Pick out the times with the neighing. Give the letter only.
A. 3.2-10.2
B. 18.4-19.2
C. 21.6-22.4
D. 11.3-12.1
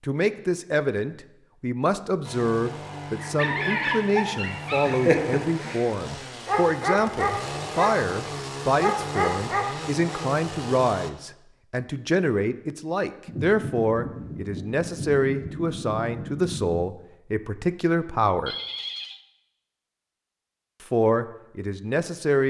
B.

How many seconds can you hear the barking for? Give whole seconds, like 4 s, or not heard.
7 s.